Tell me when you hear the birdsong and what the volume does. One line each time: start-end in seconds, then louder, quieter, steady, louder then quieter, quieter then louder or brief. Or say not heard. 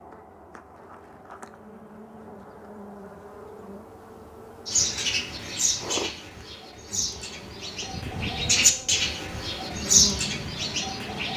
4.7-11.3 quieter then louder.